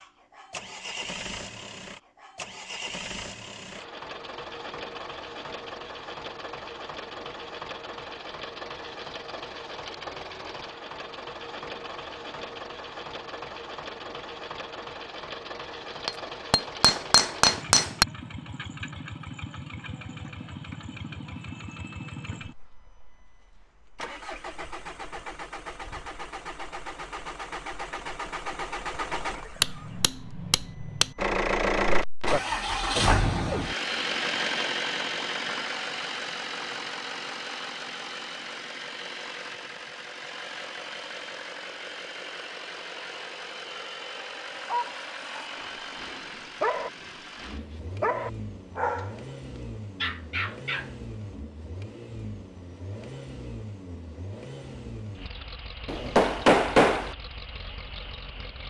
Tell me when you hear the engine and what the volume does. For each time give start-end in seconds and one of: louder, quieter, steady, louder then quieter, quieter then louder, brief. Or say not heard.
0.0-58.6 louder then quieter.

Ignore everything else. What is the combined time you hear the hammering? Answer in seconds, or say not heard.
5 s.